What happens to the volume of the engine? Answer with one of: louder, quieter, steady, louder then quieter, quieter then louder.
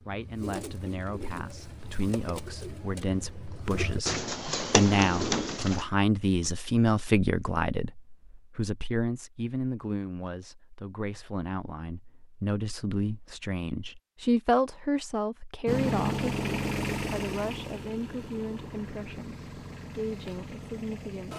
quieter.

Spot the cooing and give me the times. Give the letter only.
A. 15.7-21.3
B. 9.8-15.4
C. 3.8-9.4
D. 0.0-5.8
D.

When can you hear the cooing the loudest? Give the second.
5 s.